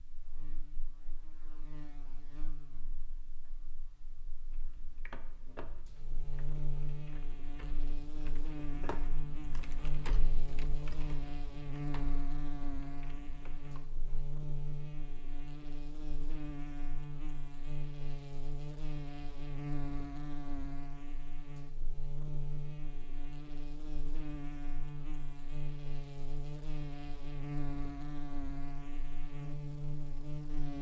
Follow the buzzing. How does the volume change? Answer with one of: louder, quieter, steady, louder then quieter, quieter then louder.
louder.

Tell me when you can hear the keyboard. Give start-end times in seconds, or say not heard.
4.5-14.2.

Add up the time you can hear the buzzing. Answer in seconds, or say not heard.
31 s.